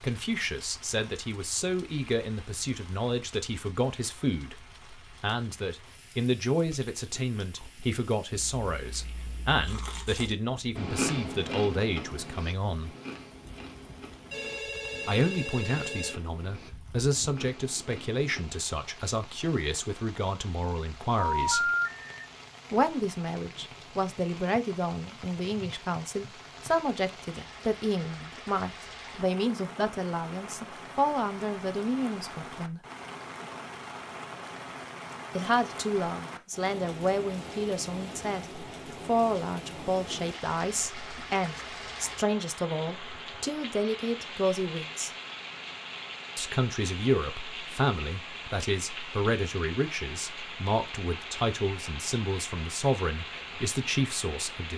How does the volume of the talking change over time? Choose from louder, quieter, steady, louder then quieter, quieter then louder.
steady.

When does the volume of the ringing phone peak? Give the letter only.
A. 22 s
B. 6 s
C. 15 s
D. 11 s
A.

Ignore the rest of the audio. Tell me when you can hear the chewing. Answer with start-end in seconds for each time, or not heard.
6.5-18.4.